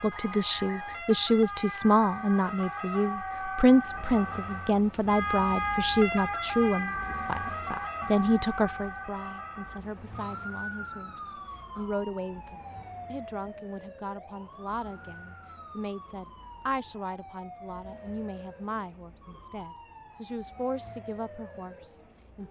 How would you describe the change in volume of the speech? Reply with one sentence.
The volume of the speech goes down.